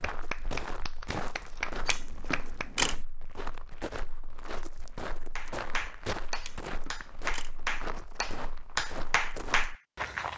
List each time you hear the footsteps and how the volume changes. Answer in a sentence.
You can hear the footsteps from 0.0 to 10.3 s, at a steady volume.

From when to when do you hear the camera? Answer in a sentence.
You can hear the camera from 1.9 to 3.0 s and from 6.4 to 7.6 s.